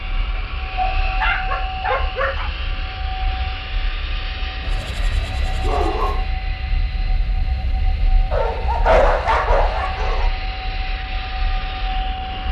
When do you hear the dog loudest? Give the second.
9 s.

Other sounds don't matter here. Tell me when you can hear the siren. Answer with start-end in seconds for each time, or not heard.
0.0-12.4.